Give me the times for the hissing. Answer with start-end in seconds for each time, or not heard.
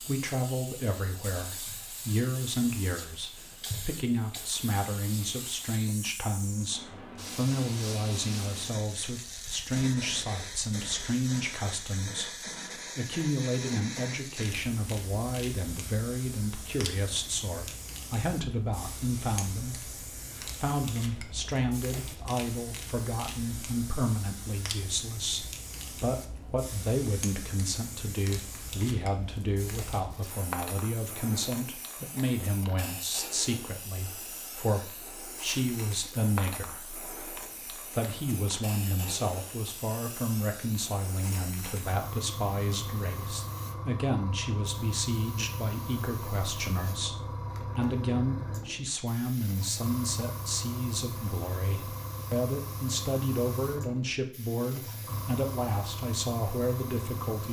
0.0-57.4.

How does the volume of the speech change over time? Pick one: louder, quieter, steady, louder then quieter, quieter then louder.
steady.